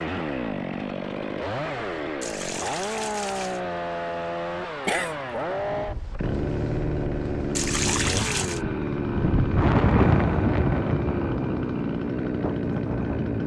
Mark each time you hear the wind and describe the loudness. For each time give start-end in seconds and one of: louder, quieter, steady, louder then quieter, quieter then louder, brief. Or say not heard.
5.5-13.3 louder then quieter.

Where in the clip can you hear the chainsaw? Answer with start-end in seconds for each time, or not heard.
0.0-13.4.